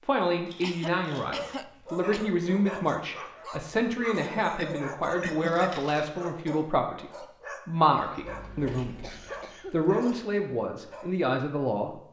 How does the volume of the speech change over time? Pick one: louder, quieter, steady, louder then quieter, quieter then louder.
steady.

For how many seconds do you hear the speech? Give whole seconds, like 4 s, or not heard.
12 s.